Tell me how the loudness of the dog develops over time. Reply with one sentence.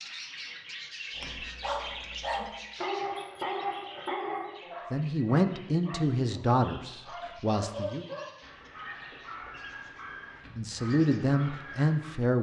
The volume of the dog goes down.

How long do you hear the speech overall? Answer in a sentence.
You can hear the speech for 5 seconds altogether.